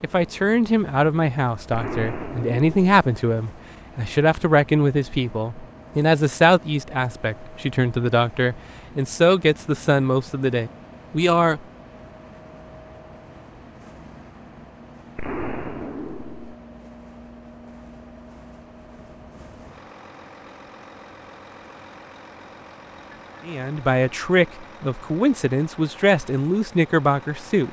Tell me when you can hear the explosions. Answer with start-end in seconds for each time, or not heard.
1.7-3.0, 15.2-16.6.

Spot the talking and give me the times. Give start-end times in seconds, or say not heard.
0.0-11.6, 23.4-27.6.